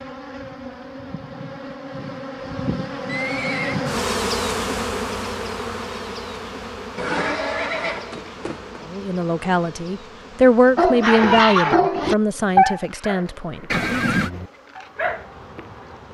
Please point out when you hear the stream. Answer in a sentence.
You can't hear the stream here.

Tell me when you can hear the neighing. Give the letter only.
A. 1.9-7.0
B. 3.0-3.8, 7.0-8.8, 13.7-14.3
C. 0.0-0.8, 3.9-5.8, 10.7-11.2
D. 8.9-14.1
B.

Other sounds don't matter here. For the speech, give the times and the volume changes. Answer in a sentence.
You can hear the speech from 8.9 to 14.1 s, getting louder then quieter.